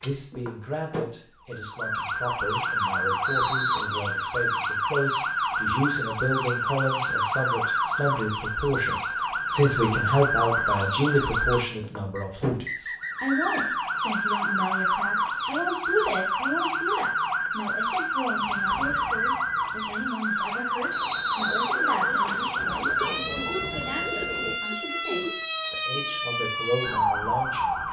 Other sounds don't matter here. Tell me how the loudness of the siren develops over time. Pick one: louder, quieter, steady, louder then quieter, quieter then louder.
steady.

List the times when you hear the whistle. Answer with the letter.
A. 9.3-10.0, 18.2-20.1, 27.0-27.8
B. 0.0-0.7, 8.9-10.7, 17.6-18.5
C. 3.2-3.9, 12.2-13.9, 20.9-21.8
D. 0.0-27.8
C.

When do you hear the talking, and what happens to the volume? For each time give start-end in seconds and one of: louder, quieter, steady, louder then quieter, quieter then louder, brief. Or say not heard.
0.0-27.8 louder then quieter.